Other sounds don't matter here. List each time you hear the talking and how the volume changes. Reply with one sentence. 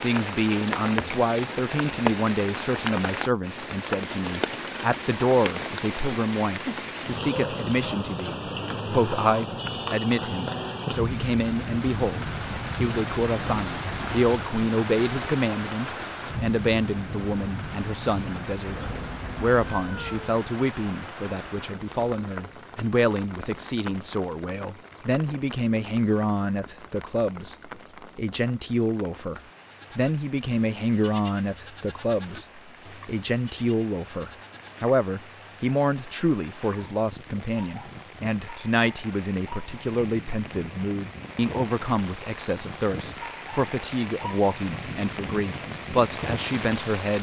You can hear the talking from 0.0 to 18.8 s, at a steady volume; and from 19.4 to 47.1 s, at a steady volume.